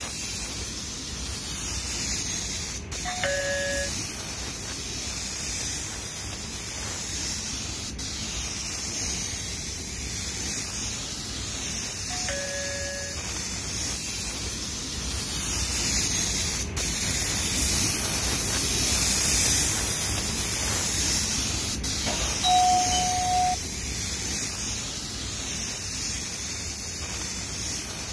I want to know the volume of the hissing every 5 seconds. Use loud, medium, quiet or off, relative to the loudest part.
medium, medium, medium, loud, loud, medium.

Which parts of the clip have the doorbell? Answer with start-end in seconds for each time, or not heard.
3.0-3.9, 12.1-13.2, 22.1-23.6.